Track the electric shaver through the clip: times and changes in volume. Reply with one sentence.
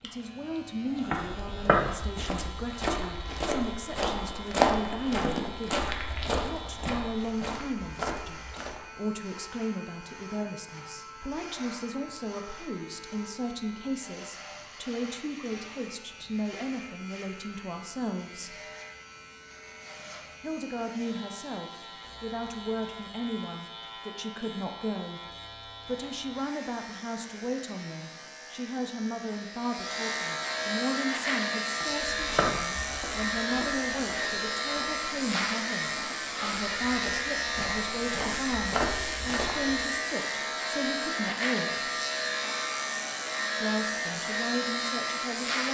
You can hear the electric shaver from 0.0 to 45.6 s, getting louder.